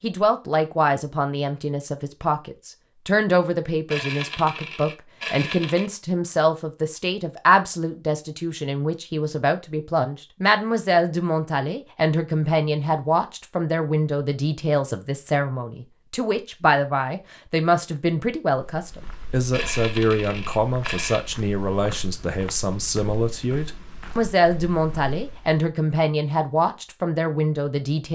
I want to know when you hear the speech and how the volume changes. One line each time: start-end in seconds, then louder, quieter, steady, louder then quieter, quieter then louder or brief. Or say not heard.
0.0-28.1 steady.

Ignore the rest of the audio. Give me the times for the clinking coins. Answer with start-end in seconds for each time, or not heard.
3.9-5.9, 19.5-21.3.